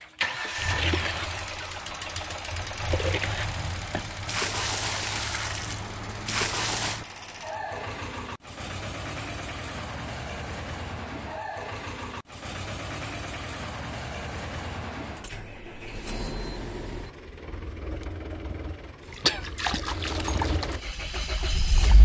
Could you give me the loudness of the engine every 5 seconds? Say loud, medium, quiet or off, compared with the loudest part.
loud, loud, loud, medium, loud.